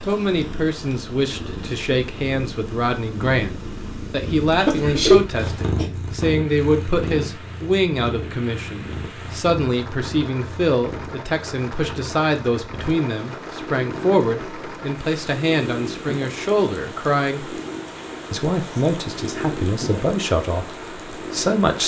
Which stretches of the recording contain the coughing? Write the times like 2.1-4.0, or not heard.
4.5-5.9.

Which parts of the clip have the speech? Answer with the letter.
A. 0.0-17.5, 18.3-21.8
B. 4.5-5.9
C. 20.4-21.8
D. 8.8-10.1
A.